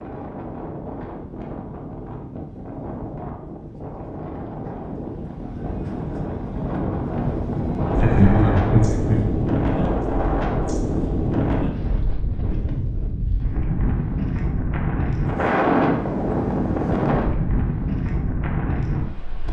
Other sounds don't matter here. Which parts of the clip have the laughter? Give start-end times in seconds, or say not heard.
8.0-9.3.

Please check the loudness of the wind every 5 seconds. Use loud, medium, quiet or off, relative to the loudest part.
medium, loud, loud, loud.